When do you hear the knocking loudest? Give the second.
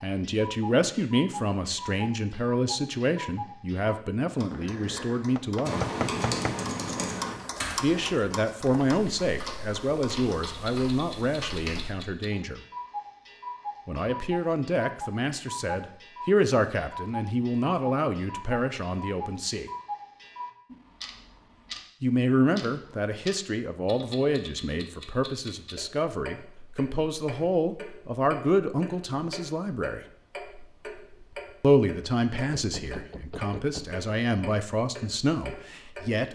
6 s.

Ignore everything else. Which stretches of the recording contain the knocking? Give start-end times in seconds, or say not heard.
4.9-6.6, 32.4-34.0.